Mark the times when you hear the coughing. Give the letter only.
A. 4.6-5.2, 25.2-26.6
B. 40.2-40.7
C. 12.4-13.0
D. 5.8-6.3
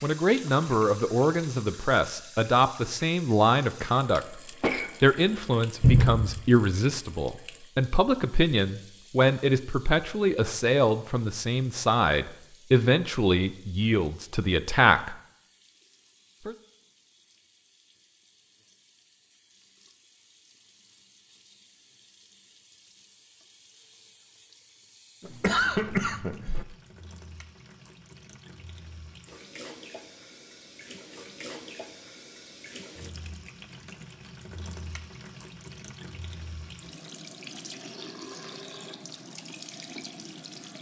A.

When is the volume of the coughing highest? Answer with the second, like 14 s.
26 s.